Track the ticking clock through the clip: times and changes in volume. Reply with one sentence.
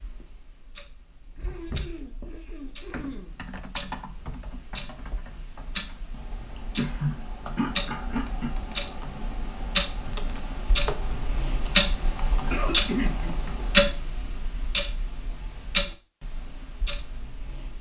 The ticking clock can be heard from 0.0 to 17.7 s, getting louder then quieter.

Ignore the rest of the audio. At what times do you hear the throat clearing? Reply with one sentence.
The throat clearing can be heard from 1.4 to 3.4 s, from 6.8 to 8.5 s and from 12.5 to 13.3 s.